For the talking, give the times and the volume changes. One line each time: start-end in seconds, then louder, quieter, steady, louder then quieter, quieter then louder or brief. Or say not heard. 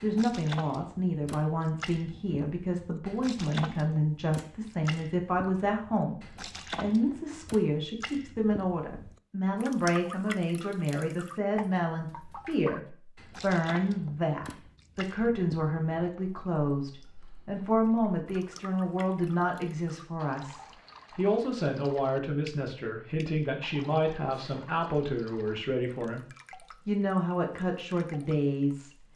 0.0-26.2 steady
26.9-28.9 brief.